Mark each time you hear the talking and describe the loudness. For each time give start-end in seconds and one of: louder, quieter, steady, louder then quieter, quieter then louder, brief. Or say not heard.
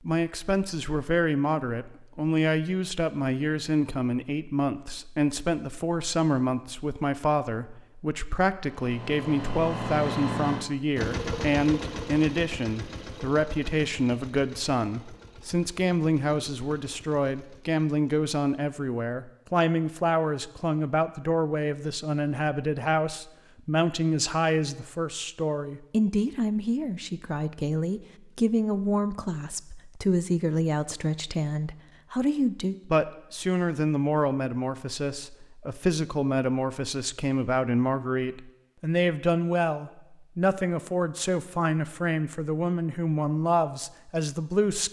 0.0-44.8 steady.